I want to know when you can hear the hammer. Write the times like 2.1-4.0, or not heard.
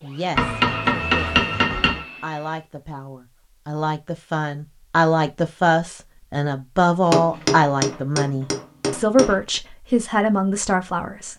0.3-2.0, 7.0-9.6.